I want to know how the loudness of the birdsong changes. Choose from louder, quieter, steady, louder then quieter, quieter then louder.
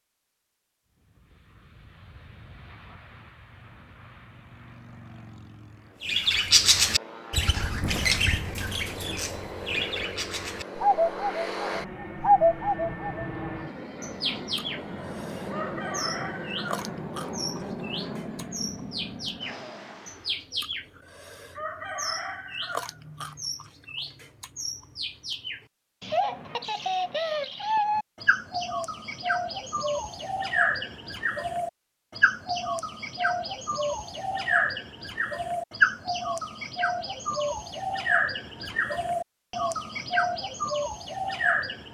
quieter then louder.